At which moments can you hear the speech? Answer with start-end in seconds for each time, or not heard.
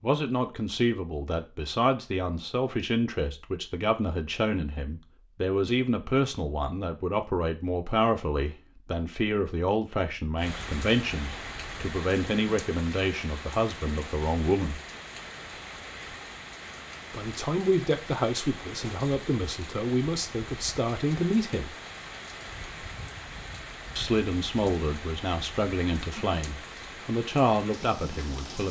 0.0-14.8, 17.1-21.8, 23.9-28.6.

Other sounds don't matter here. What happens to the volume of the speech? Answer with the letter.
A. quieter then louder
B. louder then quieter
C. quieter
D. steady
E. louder
D.